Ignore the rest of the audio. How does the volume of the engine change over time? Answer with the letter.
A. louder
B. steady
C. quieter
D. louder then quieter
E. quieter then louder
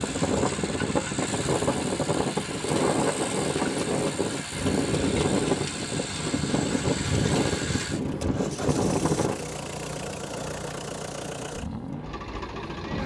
B.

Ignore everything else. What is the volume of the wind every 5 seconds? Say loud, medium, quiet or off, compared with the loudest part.
loud, loud, quiet.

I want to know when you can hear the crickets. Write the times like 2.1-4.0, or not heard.
not heard.